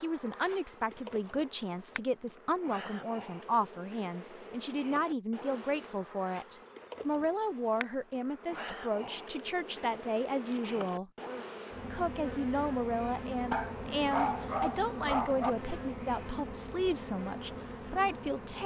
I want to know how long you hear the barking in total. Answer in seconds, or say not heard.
2 s.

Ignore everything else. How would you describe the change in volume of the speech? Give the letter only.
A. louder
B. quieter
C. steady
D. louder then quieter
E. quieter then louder
C.